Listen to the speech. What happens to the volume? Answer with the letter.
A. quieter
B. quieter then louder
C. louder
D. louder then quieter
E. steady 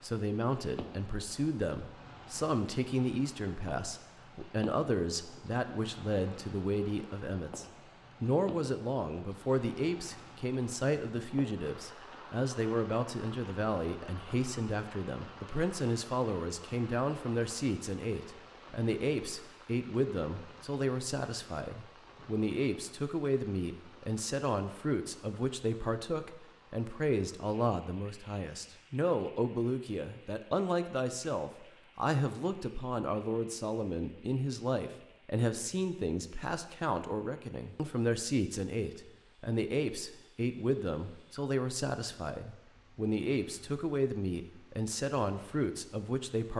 E.